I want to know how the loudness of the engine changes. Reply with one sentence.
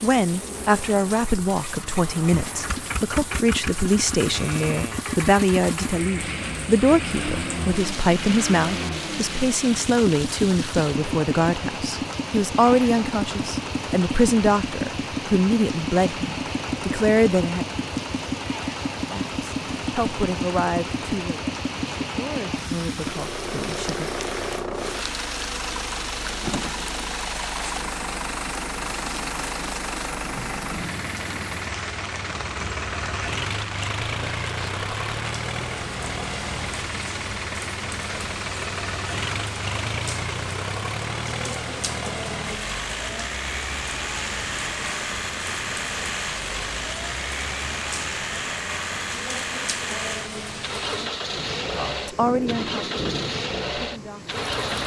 The loudness of the engine stays about the same.